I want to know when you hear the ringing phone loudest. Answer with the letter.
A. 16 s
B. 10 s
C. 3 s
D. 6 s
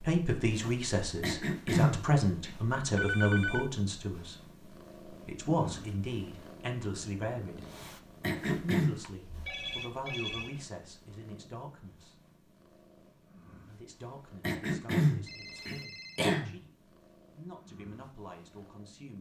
C.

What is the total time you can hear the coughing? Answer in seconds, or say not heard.
4 s.